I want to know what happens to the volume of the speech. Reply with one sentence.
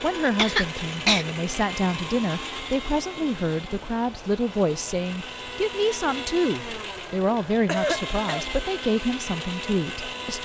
The volume of the speech stays about the same.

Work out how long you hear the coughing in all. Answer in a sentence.
You can hear the coughing for 2 seconds altogether.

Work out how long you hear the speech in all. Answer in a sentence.
The speech can be heard for 10 seconds in total.